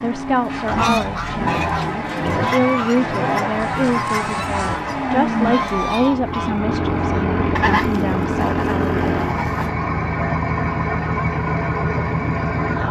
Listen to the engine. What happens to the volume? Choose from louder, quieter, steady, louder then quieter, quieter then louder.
steady.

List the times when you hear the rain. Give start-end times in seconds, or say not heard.
not heard.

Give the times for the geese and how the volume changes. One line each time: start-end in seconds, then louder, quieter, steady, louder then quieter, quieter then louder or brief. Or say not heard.
0.5-9.8 steady.